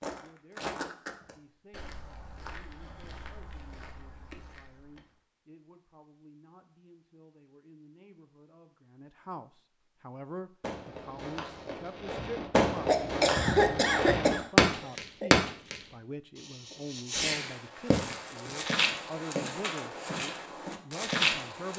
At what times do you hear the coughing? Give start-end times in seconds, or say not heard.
12.8-15.3.